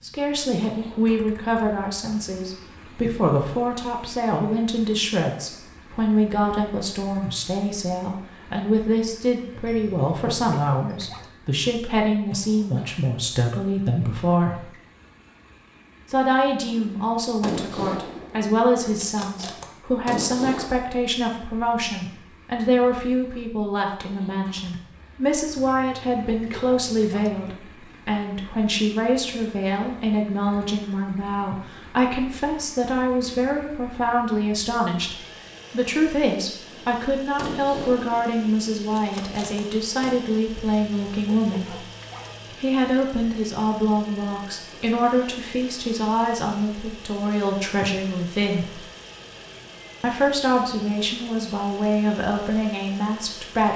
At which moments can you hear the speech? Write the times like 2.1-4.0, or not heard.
0.0-14.7, 16.1-41.8, 42.5-48.8, 50.0-53.7.